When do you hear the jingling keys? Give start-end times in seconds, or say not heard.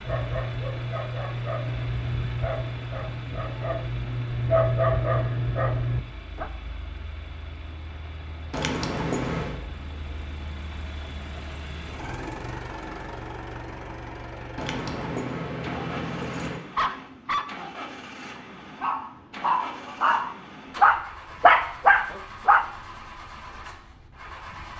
8.5-9.6, 14.6-16.6.